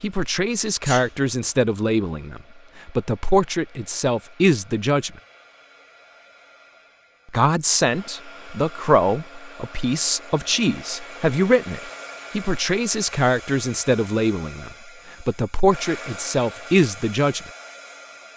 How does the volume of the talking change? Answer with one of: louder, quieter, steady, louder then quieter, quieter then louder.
steady.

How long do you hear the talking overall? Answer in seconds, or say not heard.
15 s.